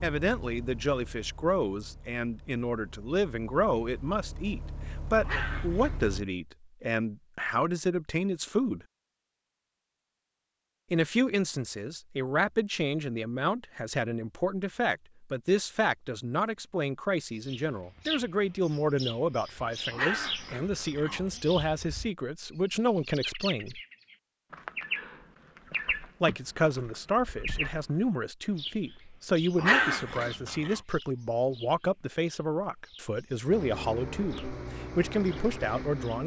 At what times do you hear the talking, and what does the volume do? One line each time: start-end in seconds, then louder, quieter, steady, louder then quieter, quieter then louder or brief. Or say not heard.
0.0-8.8 steady
10.9-23.8 steady
26.2-36.2 steady.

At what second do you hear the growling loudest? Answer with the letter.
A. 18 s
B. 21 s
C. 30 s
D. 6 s
C.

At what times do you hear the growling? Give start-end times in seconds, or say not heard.
5.2-6.2, 19.9-21.4, 29.6-30.8.